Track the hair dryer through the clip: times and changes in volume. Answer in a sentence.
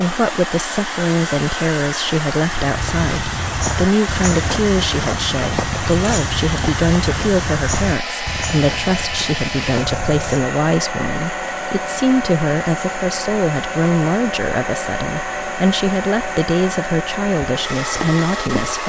You can hear the hair dryer from 0.0 to 18.8 s, at a steady volume.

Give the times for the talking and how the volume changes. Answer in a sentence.
The talking can be heard from 0.0 to 18.8 s, at a steady volume.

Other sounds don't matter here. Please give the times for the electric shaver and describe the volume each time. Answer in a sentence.
You can't hear the electric shaver here.